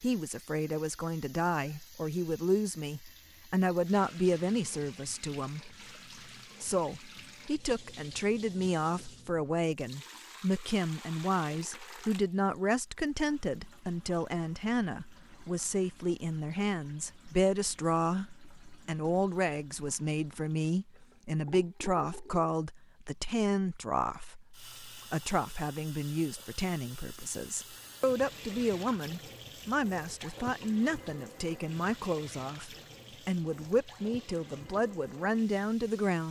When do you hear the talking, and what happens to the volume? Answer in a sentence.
The talking can be heard from 0.0 to 5.8 s, getting louder then quieter; and from 6.6 to 36.2 s, at a steady volume.